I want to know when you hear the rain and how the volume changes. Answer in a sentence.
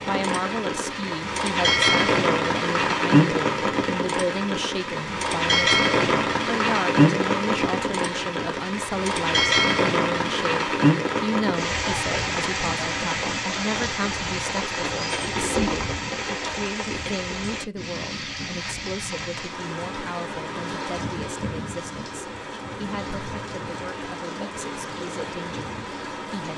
You can hear the rain from 0.0 to 26.5 s, getting quieter.